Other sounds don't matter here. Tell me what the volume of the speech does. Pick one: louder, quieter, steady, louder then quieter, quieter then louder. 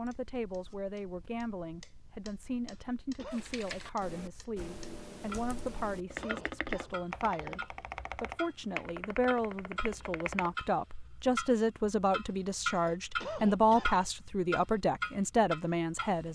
louder.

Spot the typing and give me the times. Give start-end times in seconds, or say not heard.
3.3-10.6.